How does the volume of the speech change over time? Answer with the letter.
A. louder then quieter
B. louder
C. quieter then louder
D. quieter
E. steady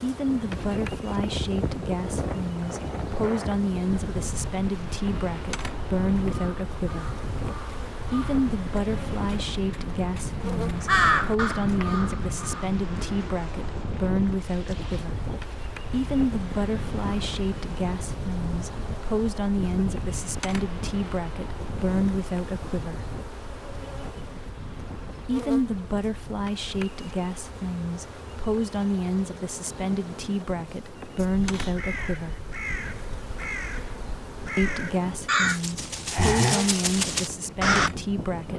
E.